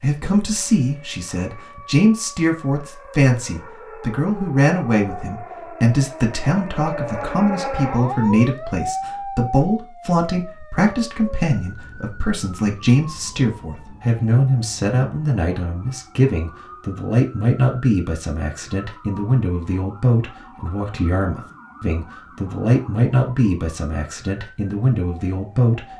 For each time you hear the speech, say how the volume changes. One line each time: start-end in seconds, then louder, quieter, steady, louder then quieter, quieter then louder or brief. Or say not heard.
0.0-25.9 steady.